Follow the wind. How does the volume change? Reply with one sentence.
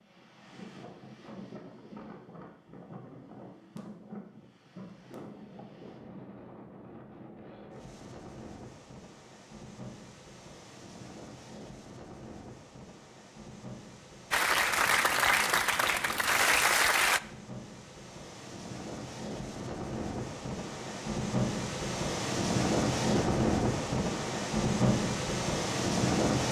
The volume of the wind goes up.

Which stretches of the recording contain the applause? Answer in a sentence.
The applause can be heard from 14.3 to 17.2 s.